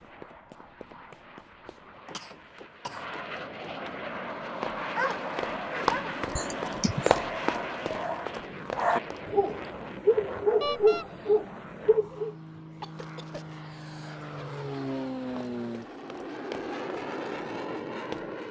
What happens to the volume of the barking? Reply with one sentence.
The loudness of the barking goes up.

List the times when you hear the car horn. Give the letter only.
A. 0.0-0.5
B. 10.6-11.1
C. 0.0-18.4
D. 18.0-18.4
B.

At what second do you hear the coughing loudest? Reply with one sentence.
The loudest moment of the coughing is at 7 seconds.